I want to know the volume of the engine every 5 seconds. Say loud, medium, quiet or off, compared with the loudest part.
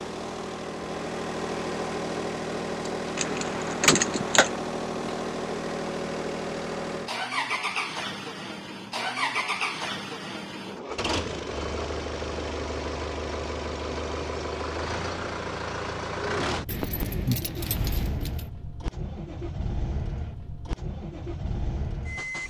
loud, loud, loud, loud, medium.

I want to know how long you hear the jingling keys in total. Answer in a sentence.
You can hear the jingling keys for 3 seconds altogether.